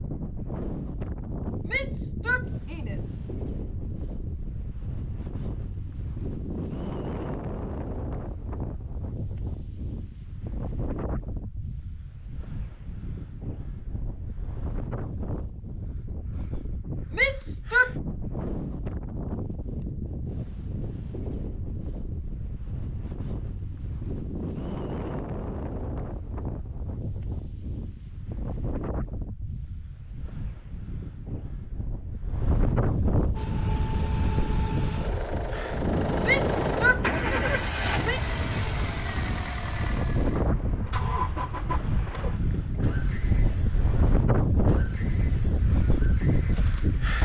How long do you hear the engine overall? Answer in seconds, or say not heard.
14 s.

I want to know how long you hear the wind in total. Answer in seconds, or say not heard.
47 s.